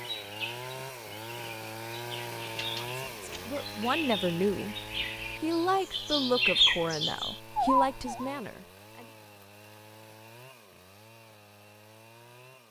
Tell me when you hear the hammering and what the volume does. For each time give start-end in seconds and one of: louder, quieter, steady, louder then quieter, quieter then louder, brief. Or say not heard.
not heard.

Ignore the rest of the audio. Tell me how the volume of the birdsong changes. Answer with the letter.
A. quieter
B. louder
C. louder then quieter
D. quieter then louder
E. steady
B.